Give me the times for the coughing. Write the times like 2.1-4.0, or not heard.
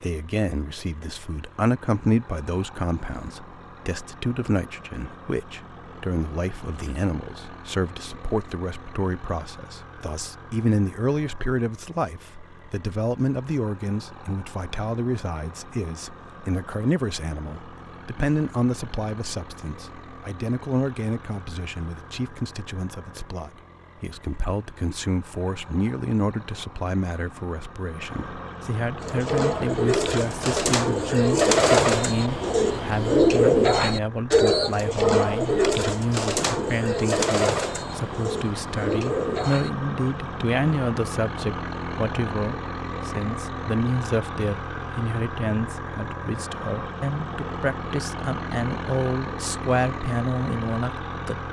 not heard.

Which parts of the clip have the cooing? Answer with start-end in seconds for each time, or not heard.
29.0-39.7.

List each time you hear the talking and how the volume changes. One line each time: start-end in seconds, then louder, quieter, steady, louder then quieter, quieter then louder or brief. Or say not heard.
0.0-51.4 steady.